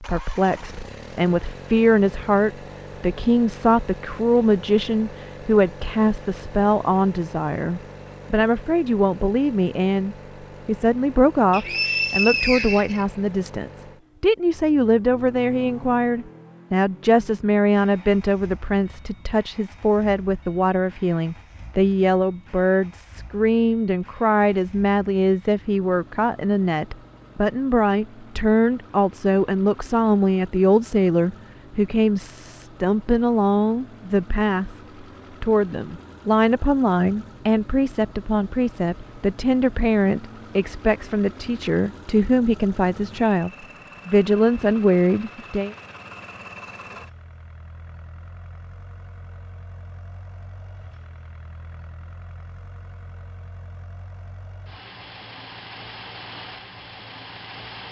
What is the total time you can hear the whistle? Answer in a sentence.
You can hear the whistle for 2 seconds altogether.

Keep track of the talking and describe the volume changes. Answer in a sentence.
The volume of the talking stays about the same.